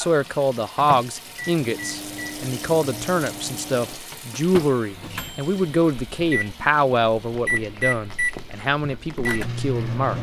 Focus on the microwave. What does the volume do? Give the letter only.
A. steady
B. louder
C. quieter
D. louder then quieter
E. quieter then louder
B.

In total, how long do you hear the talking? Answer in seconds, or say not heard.
10 s.